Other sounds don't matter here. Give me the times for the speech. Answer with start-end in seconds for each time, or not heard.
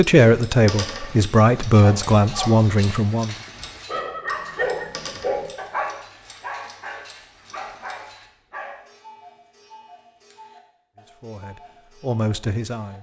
0.0-3.4, 10.9-12.9.